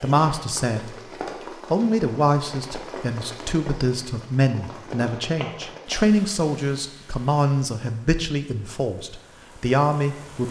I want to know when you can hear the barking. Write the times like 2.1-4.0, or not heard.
not heard.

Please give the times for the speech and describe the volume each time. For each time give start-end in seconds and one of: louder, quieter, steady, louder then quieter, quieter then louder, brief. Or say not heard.
0.0-1.1 brief
1.7-10.4 steady.